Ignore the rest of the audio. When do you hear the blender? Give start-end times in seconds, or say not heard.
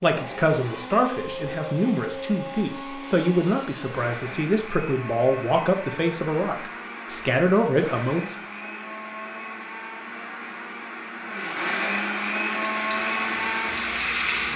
0.0-14.5.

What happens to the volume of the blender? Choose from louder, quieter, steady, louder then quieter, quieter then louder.
louder.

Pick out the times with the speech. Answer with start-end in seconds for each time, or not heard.
0.0-8.3.